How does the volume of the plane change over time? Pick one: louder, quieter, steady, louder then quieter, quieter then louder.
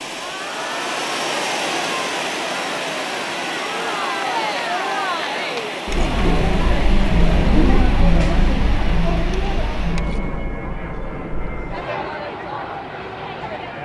quieter.